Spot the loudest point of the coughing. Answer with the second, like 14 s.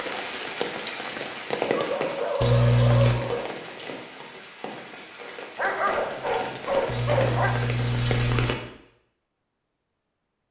3 s.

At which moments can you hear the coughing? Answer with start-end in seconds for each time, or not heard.
2.4-3.1, 6.8-8.5.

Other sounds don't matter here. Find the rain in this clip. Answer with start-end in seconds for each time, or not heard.
0.0-8.6.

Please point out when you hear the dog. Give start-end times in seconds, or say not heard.
1.6-3.5, 5.5-7.5.